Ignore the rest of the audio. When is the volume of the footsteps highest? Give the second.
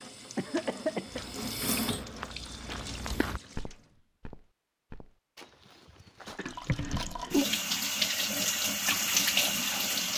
3 s.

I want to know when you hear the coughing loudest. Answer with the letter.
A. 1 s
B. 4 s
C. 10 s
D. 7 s
A.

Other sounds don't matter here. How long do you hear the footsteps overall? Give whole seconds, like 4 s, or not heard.
6 s.